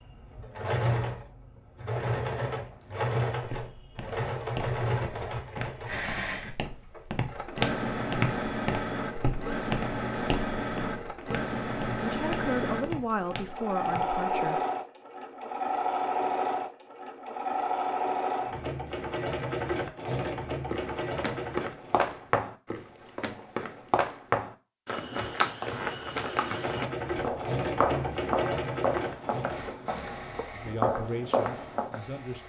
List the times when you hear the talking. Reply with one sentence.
You can hear the talking from 11.9 to 14.6 s and from 30.5 to 32.4 s.